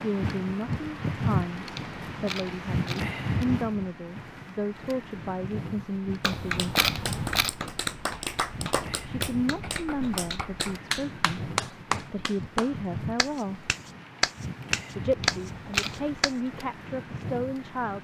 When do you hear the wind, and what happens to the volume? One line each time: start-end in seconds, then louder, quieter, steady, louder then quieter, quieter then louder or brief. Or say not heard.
0.0-17.9 quieter.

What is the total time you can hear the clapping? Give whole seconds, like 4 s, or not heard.
10 s.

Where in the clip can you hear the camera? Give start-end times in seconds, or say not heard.
1.8-3.1, 6.2-7.5, 15.2-16.1.